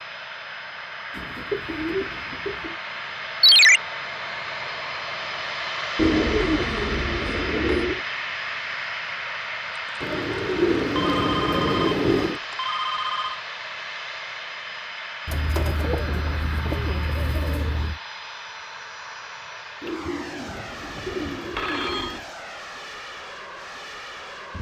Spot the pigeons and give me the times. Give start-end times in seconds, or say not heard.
1.1-2.8, 6.0-8.0, 10.0-12.4, 15.2-18.0, 19.8-22.3.